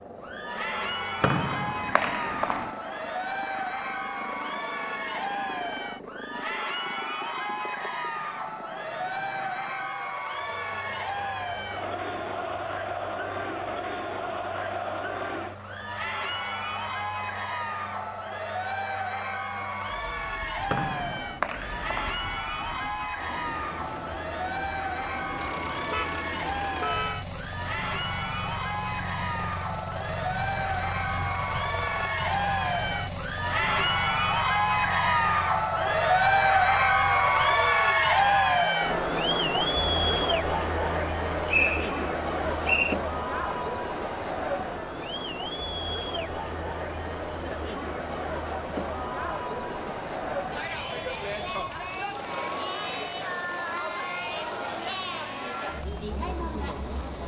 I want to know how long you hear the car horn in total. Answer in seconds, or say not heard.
2 s.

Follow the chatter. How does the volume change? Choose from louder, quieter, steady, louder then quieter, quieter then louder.
louder then quieter.